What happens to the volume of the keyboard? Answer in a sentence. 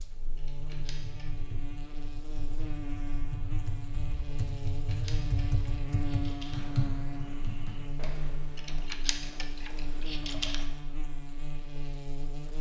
The loudness of the keyboard goes up, then down.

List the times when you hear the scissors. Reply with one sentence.
You can hear the scissors from 0.3 to 1.4 s, from 4.5 to 6.7 s and from 8.6 to 10.7 s.